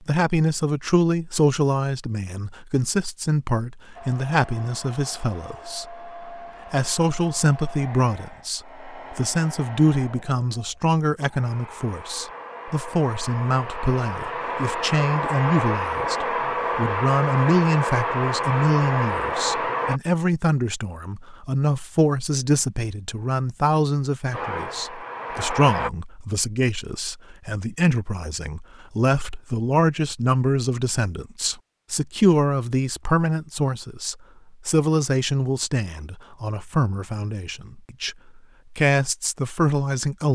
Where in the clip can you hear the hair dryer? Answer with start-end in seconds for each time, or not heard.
4.0-20.0, 24.3-25.9.